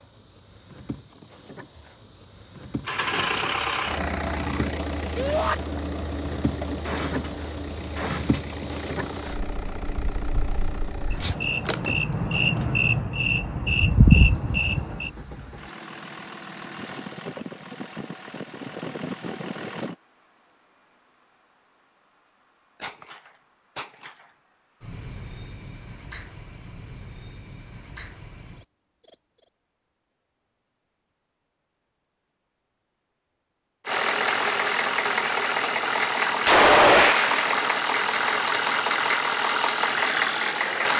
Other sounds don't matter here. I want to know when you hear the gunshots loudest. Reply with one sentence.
The volume of the gunshots peaks at 37 seconds.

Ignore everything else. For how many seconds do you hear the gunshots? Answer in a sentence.
You can hear the gunshots for 4 seconds altogether.